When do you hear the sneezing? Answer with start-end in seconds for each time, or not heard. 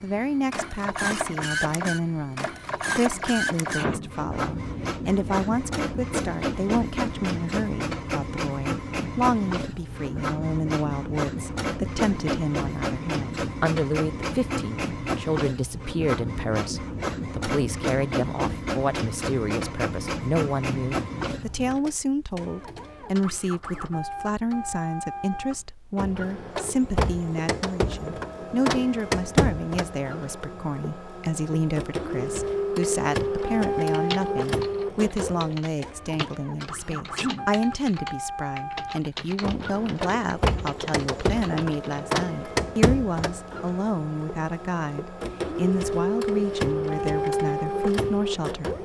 36.8-37.5.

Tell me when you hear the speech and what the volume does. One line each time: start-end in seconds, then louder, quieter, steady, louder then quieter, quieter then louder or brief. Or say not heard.
0.0-48.8 steady.